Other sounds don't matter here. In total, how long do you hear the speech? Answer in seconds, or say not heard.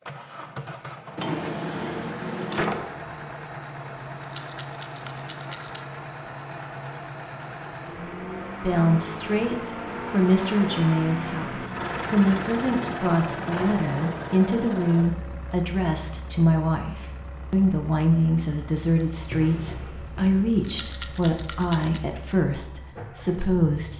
15 s.